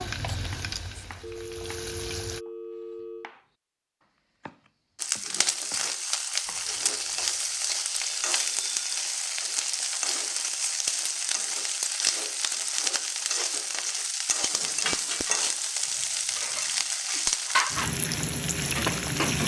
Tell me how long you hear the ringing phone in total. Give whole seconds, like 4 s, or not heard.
4 s.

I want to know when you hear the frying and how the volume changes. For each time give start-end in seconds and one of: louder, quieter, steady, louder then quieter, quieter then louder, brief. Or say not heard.
0.0-2.4 brief
5.0-19.4 steady.